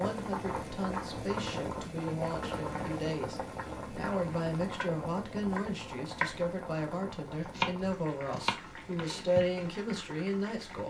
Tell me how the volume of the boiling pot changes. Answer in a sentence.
The volume of the boiling pot goes down.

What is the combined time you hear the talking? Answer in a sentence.
The talking can be heard for 11 seconds in total.